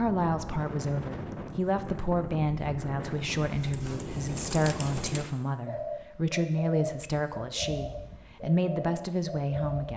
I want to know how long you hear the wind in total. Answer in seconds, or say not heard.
5 s.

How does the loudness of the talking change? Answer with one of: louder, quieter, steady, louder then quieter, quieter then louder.
steady.